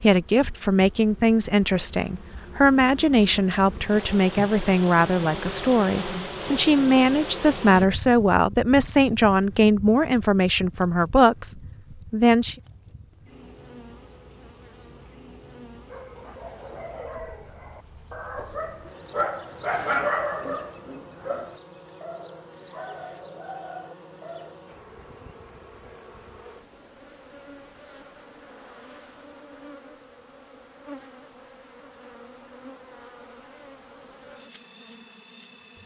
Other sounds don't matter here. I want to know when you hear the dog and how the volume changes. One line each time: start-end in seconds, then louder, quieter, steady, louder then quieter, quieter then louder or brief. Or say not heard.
15.8-24.6 louder then quieter.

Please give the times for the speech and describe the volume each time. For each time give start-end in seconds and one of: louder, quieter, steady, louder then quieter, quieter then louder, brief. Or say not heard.
0.0-12.6 steady.